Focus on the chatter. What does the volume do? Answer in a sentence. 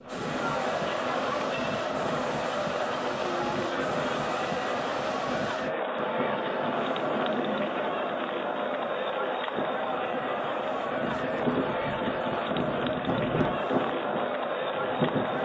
The loudness of the chatter stays about the same.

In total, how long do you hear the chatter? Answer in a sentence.
The chatter can be heard for 15 seconds in total.